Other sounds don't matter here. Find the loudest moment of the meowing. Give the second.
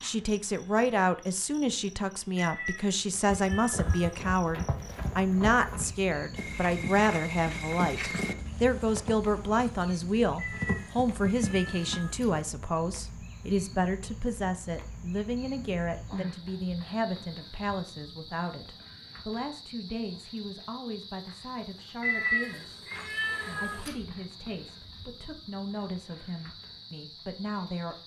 22 s.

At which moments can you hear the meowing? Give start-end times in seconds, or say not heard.
2.4-4.2, 10.3-12.4, 22.0-23.9.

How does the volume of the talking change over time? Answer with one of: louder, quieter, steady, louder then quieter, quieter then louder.
quieter.